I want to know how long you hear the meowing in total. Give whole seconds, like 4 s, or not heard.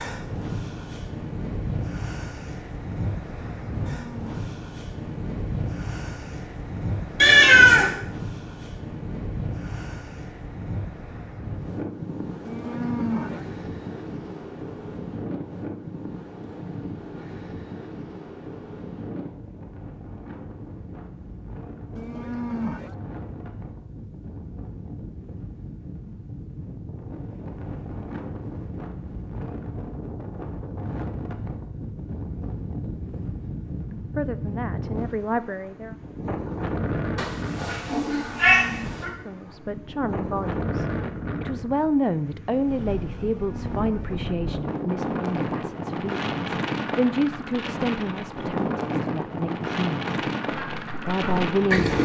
3 s.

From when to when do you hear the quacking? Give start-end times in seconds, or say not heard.
50.5-51.9.